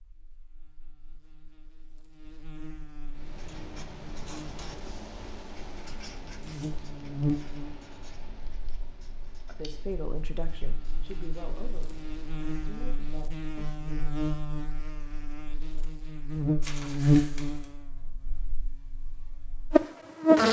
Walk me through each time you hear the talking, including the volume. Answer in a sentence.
You can hear the talking from 9.4 to 14.3 s, getting quieter.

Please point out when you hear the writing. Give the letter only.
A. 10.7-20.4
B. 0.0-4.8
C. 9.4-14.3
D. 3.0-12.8
D.